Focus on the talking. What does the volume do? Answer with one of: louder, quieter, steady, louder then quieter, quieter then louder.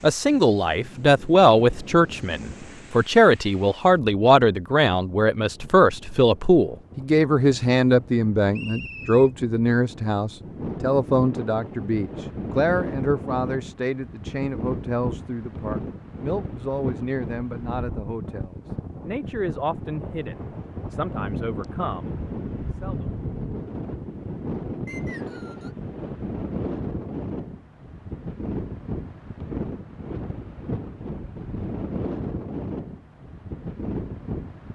quieter.